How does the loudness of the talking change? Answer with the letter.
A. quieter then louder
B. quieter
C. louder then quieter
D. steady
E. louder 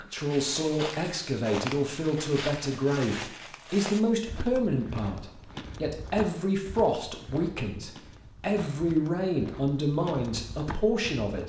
D.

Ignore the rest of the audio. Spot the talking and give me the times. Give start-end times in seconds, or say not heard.
0.0-11.4.